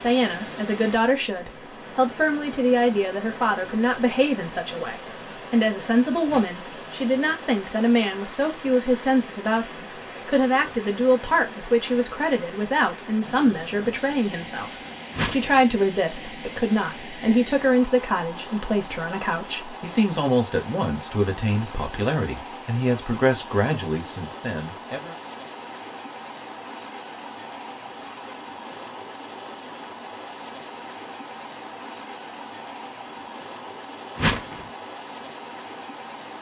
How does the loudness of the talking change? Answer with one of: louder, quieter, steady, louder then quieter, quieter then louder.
steady.